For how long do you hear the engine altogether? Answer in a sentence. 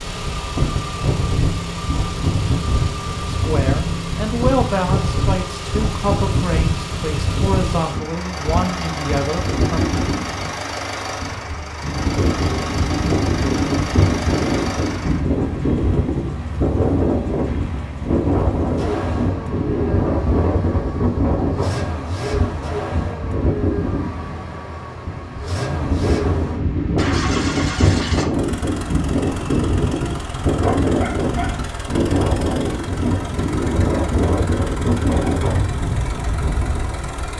You can hear the engine for 37 seconds altogether.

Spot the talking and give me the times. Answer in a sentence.
You can hear the talking from 3.3 to 9.8 s.